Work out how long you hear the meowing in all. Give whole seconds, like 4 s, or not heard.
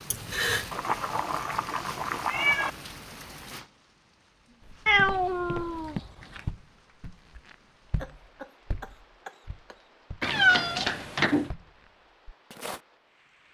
5 s.